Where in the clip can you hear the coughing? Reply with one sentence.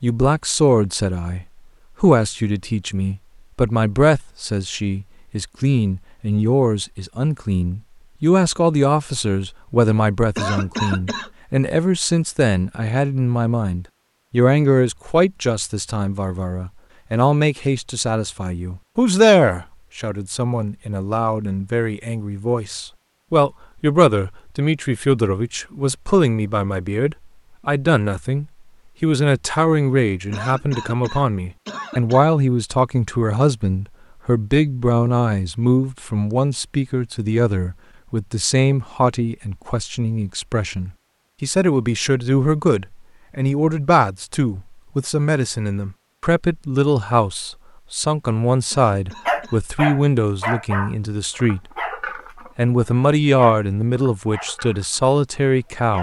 The coughing can be heard from 10.3 to 11.3 s, from 30.3 to 32.2 s and from 48.7 to 49.6 s.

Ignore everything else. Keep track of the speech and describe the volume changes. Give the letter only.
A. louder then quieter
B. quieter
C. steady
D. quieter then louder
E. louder
C.